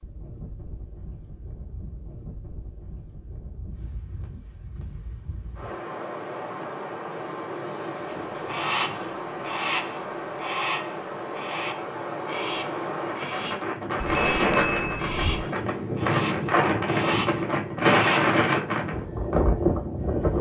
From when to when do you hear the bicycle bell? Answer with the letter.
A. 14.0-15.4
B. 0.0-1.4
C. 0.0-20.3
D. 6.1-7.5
A.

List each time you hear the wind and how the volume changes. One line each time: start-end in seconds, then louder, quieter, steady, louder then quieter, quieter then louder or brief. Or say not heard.
0.0-20.3 louder.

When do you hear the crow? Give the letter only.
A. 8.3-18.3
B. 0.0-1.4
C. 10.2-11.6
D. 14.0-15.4
A.